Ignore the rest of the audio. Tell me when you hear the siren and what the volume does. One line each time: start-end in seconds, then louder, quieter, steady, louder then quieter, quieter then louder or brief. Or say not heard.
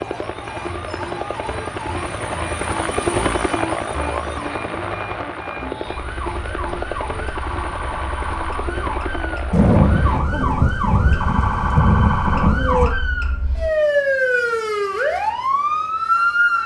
0.0-16.6 louder.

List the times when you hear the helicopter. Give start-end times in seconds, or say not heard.
0.0-10.2.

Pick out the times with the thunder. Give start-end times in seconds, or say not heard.
9.5-12.9.